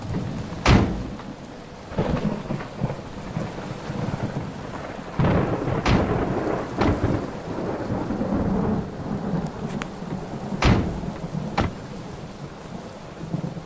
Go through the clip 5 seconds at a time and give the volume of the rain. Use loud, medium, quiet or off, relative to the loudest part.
medium, loud, medium.